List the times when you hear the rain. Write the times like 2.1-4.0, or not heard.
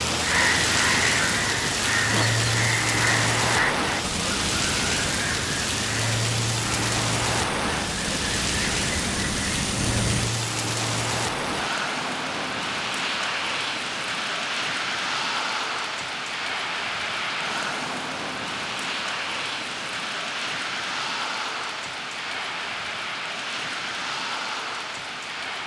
0.0-25.6.